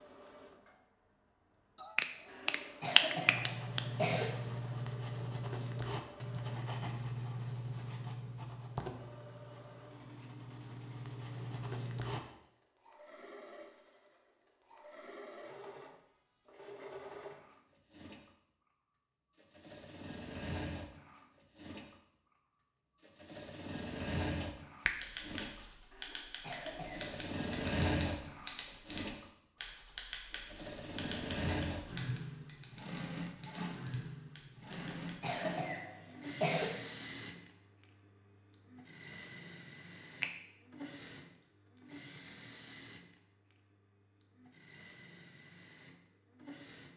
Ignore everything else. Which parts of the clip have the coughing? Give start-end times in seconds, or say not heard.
2.2-4.3, 25.9-27.1, 34.7-36.7.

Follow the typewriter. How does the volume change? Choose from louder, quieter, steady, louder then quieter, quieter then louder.
quieter.